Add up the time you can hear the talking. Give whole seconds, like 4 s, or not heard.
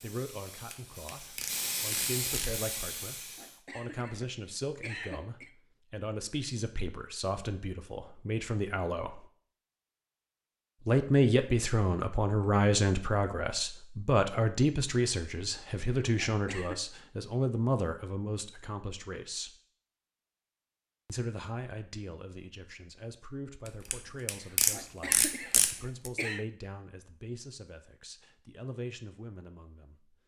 27 s.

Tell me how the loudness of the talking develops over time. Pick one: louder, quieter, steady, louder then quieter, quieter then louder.
louder then quieter.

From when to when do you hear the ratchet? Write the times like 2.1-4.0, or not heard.
0.7-2.6, 23.6-26.1.